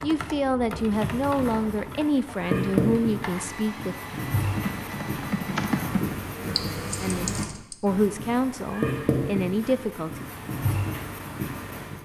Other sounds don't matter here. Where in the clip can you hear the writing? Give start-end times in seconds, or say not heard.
0.8-11.9.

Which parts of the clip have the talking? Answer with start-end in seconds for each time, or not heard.
0.0-4.0, 7.0-10.2.